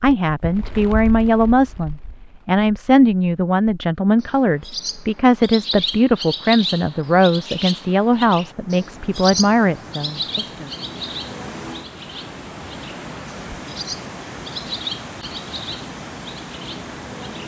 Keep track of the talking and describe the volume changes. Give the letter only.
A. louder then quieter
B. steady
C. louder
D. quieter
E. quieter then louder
B.